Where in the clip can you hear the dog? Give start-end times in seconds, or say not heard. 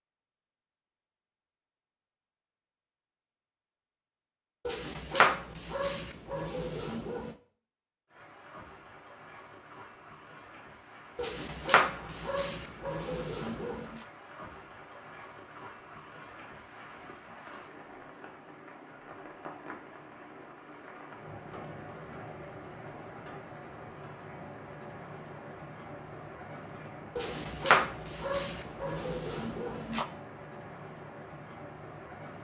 4.7-7.3, 11.2-14.1, 27.1-30.1.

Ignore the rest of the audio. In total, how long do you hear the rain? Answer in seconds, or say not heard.
24 s.